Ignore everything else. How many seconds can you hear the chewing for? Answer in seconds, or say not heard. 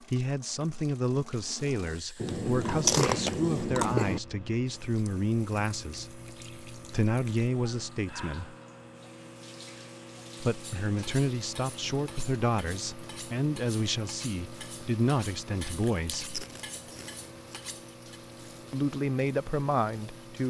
4 s.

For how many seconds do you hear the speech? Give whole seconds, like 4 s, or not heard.
16 s.